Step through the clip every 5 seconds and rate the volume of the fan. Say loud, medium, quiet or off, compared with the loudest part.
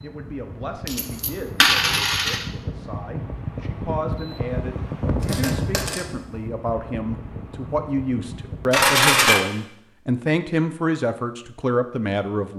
loud, loud, off.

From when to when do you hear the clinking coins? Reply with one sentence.
You can hear the clinking coins from 0.8 to 2.5 s, from 5.2 to 6.0 s and from 8.7 to 9.4 s.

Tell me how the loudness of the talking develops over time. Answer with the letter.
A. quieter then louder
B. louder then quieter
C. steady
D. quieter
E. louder
E.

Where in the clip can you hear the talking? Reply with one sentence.
You can hear the talking from 0.0 to 12.5 s.